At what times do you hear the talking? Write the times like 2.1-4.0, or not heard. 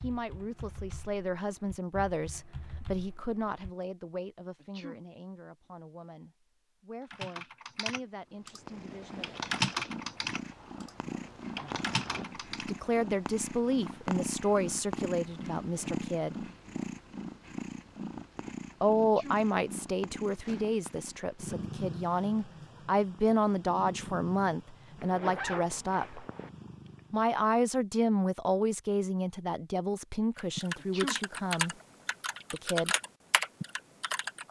0.0-9.3, 12.6-16.4, 18.8-26.2, 27.1-31.8, 32.5-33.0.